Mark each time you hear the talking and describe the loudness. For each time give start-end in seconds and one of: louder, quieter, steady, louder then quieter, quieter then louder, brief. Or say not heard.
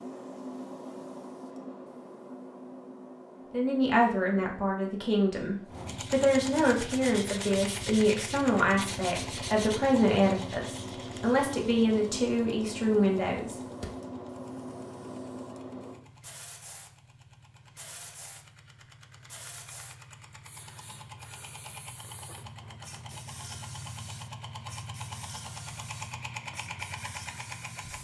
3.5-13.6 steady.